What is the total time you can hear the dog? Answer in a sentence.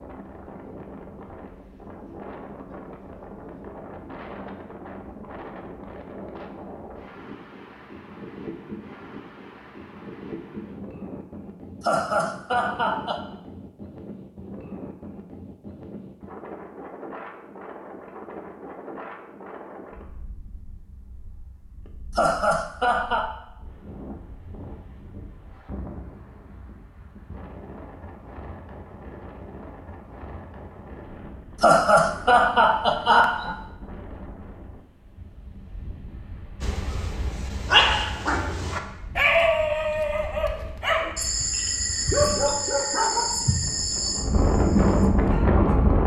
You can hear the dog for 9 seconds altogether.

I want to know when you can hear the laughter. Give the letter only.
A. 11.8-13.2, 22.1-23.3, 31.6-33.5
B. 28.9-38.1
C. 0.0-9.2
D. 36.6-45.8
A.